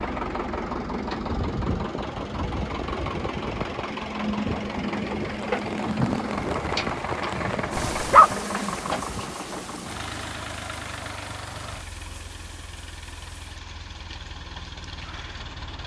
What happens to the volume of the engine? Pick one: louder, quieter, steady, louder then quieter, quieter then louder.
quieter.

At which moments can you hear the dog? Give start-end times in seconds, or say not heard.
7.2-8.3.